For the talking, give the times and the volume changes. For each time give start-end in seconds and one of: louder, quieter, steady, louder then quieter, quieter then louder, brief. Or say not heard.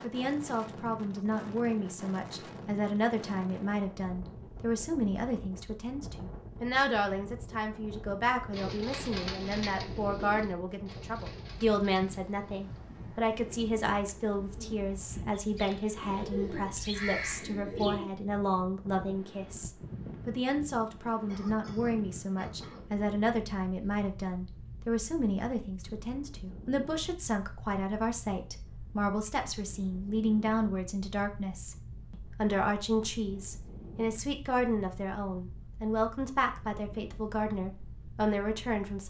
0.0-39.0 steady.